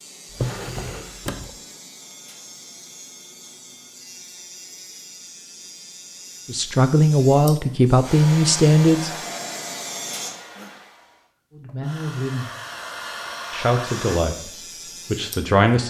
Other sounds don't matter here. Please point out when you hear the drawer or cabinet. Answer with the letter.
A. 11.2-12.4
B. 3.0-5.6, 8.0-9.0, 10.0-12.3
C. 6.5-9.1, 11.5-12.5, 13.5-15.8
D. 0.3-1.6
D.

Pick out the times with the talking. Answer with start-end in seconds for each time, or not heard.
6.5-9.1, 11.5-12.5, 13.5-15.8.